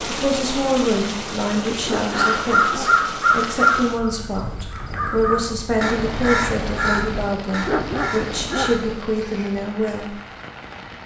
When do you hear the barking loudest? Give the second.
8 s.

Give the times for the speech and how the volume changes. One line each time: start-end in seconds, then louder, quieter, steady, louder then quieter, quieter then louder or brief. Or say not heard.
0.0-10.2 steady.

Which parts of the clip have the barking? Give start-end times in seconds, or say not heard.
1.8-3.0, 7.6-8.8.